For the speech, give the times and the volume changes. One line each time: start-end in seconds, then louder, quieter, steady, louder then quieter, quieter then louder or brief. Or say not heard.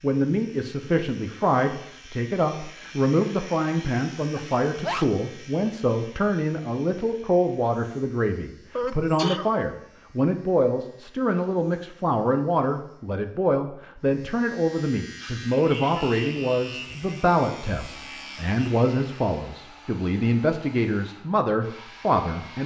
0.0-22.6 steady.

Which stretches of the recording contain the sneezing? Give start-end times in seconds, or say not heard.
4.3-5.0, 8.8-9.6, 15.7-16.3.